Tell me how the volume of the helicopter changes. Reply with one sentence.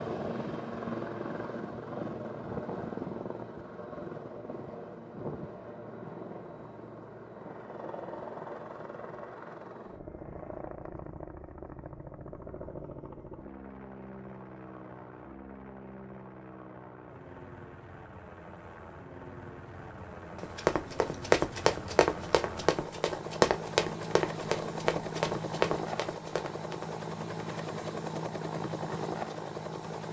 The loudness of the helicopter goes down, then up.